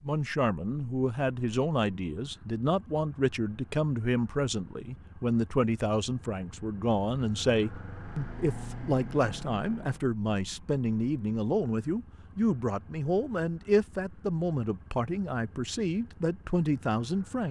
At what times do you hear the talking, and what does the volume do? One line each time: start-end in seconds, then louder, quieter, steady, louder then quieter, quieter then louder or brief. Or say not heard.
0.0-17.4 steady.